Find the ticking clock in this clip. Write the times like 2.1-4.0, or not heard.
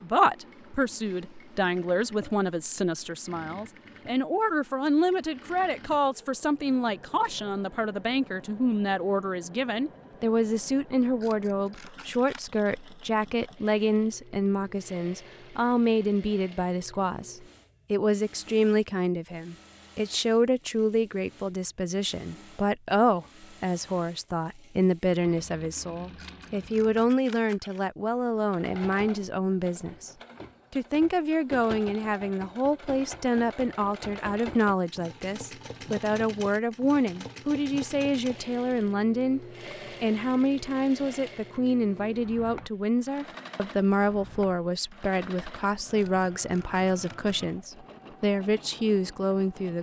not heard.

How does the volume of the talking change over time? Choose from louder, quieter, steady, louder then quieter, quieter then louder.
steady.